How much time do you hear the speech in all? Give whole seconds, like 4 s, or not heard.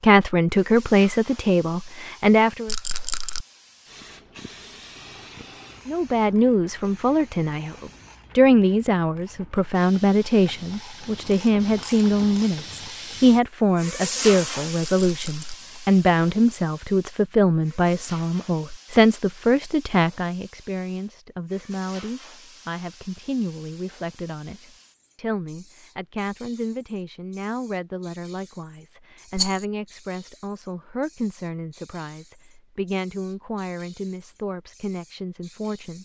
33 s.